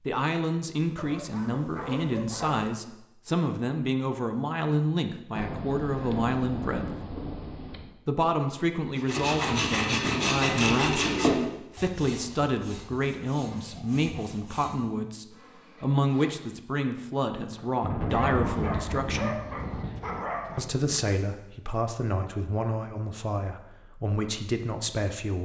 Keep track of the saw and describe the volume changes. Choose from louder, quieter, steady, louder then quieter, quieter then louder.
quieter.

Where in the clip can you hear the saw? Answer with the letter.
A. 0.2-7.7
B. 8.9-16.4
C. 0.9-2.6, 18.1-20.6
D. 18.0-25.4
B.